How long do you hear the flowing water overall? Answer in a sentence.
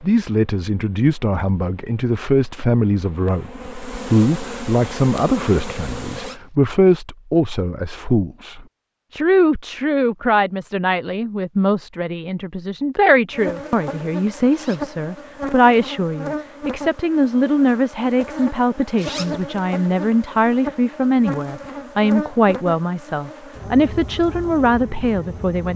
You can't hear the flowing water here.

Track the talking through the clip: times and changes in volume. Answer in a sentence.
You can hear the talking from 0.0 to 25.7 s, at a steady volume.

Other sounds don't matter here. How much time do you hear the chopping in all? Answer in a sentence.
You can't hear the chopping here.